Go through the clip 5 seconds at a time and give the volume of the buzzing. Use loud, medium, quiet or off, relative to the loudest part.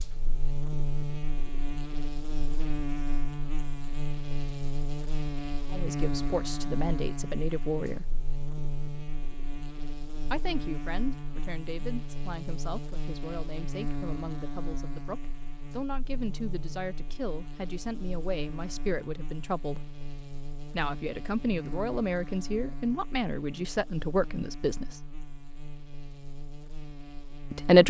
loud, loud, loud, medium, medium, medium.